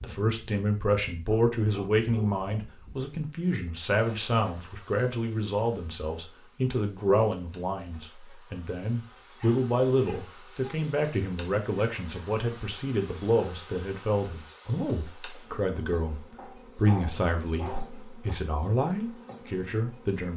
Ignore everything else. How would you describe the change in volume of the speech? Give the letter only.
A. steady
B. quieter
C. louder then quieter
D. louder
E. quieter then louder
A.